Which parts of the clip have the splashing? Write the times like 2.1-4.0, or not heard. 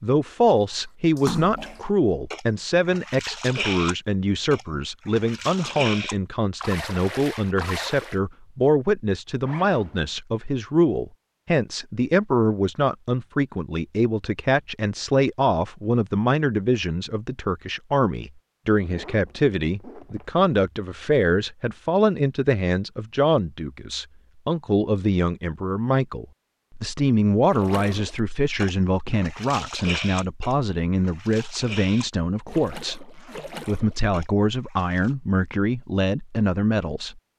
1.1-8.2, 27.5-35.1.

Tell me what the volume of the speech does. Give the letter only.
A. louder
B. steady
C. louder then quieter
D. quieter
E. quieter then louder
B.